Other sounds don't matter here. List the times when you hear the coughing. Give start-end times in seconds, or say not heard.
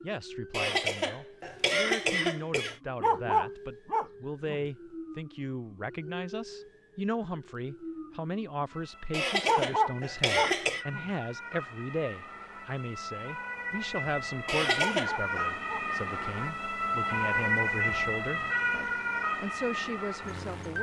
0.5-2.8, 9.1-10.8, 14.4-15.4.